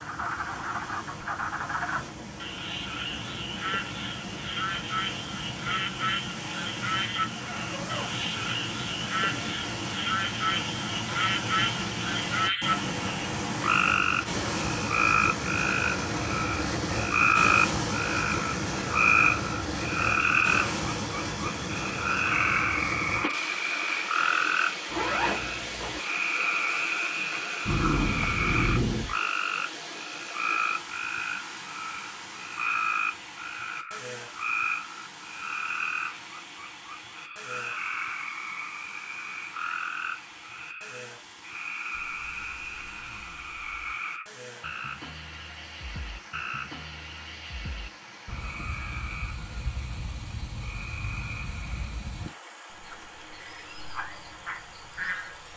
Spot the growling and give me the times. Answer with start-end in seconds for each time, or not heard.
27.6-29.1.